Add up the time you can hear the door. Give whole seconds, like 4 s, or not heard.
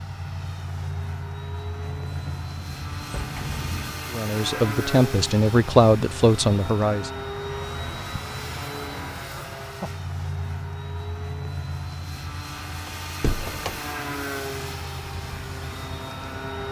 3 s.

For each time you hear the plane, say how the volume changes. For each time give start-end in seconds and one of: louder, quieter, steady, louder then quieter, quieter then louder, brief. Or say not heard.
0.0-16.6 steady.